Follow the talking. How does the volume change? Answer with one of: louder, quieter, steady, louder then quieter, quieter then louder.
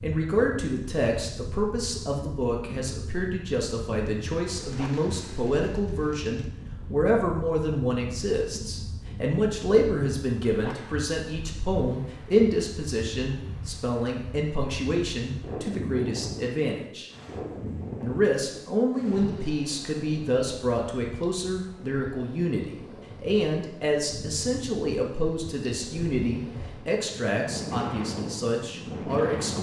steady.